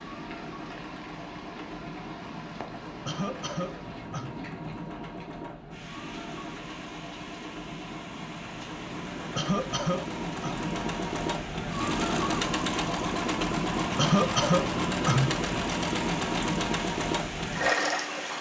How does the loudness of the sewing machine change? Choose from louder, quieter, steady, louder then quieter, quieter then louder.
louder.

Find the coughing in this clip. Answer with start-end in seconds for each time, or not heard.
3.0-4.3, 9.3-10.6, 13.9-15.4.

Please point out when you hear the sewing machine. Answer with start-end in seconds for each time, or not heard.
0.0-18.3.